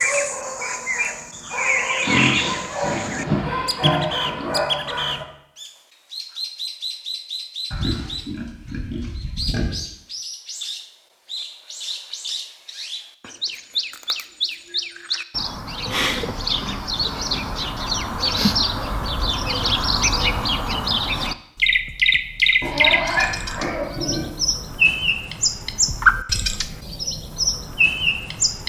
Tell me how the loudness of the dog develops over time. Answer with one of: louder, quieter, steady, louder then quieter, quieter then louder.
louder.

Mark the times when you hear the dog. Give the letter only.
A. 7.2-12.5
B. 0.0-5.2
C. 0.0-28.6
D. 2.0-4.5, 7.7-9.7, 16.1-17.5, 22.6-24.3
B.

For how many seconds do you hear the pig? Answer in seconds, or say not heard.
8 s.